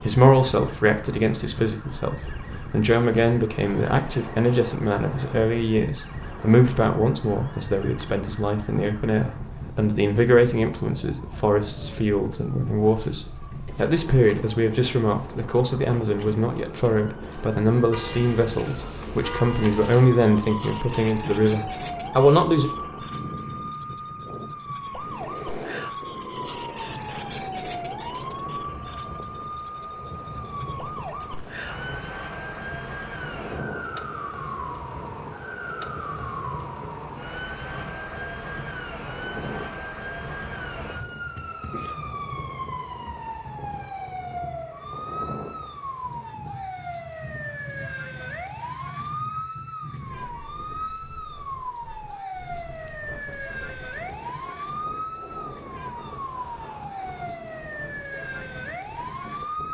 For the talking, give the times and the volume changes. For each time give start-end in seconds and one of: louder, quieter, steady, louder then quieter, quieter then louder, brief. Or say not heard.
0.0-22.7 steady.